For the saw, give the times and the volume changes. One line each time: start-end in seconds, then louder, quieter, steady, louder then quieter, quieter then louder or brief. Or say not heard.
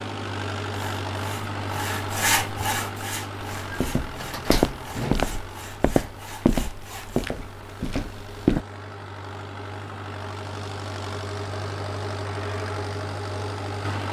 0.7-7.2 louder then quieter.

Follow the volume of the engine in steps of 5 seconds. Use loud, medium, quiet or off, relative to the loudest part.
loud, medium, loud.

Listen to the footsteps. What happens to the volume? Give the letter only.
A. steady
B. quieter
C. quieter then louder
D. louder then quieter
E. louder
B.